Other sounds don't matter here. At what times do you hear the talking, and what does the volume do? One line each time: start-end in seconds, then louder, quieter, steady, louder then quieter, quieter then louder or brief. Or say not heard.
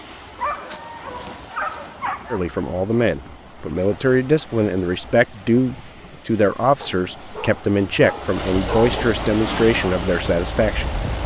2.3-10.9 steady.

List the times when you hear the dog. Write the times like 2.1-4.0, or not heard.
0.3-2.4, 6.8-9.1.